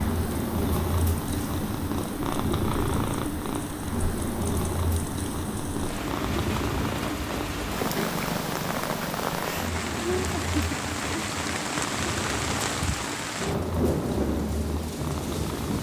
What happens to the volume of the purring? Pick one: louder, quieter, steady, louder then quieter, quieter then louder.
quieter.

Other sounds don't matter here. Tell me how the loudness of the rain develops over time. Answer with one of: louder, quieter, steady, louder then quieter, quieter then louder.
louder.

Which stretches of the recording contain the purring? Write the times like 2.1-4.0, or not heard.
0.0-15.7.